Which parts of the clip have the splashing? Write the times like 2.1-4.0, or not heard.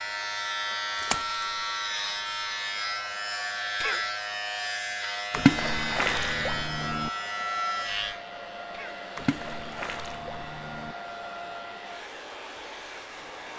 0.9-1.4, 5.3-7.1, 9.2-10.9.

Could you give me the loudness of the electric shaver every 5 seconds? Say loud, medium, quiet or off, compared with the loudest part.
loud, loud, quiet.